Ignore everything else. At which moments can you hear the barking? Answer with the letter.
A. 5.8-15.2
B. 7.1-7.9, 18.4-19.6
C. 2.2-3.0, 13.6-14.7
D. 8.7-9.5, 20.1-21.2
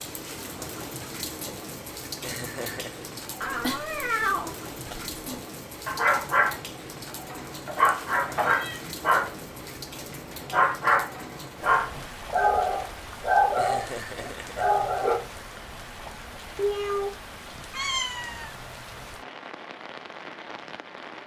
A.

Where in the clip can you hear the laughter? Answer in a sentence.
The laughter can be heard from 2.2 to 3.0 s and from 13.6 to 14.7 s.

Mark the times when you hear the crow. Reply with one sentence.
The crow can't be heard in this clip.